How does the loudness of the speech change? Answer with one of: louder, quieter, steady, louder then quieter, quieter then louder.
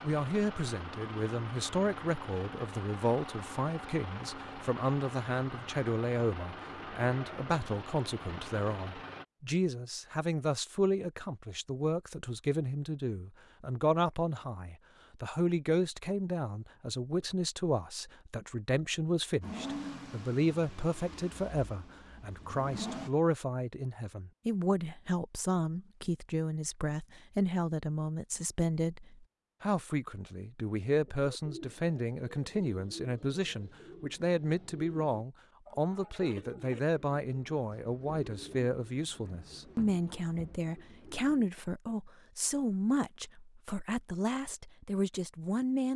steady.